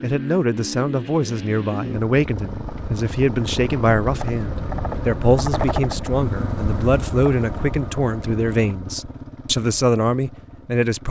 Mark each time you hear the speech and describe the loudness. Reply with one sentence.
You can hear the speech from 0.0 to 11.0 s, at a steady volume.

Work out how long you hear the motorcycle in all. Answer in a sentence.
You can hear the motorcycle for 11 seconds altogether.